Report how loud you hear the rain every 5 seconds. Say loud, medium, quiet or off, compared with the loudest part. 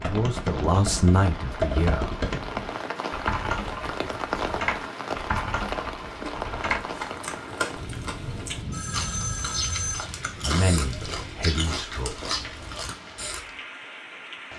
loud, loud, medium.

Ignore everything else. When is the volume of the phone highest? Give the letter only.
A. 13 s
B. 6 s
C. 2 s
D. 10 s
D.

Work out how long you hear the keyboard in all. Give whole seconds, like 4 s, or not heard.
7 s.